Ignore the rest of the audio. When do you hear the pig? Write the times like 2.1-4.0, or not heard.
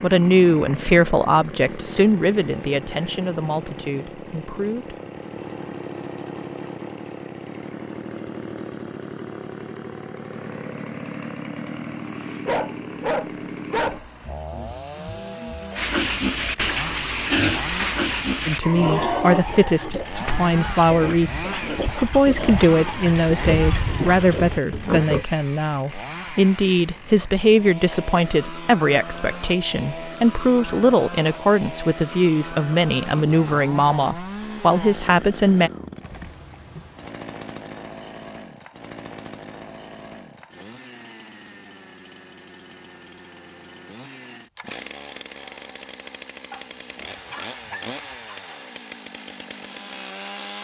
15.8-25.2.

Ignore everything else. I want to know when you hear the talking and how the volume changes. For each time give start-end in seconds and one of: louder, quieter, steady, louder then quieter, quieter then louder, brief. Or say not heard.
0.0-5.0 quieter
18.4-35.7 steady.